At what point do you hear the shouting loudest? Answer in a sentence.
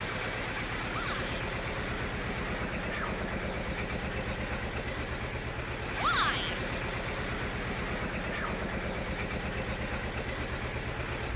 The volume of the shouting peaks at 6 seconds.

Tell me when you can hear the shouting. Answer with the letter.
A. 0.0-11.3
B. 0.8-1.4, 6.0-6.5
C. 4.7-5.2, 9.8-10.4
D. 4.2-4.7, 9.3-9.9
B.